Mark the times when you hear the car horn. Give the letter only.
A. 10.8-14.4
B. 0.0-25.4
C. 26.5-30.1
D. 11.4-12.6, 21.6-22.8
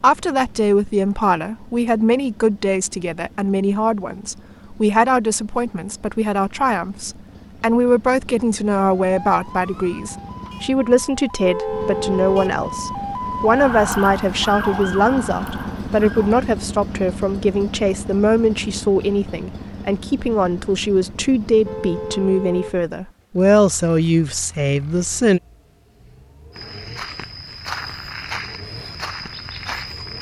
D.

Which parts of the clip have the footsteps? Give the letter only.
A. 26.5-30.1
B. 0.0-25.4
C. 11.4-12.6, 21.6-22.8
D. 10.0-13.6
A.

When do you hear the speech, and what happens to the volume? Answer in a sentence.
The speech can be heard from 0.0 to 25.4 s, at a steady volume.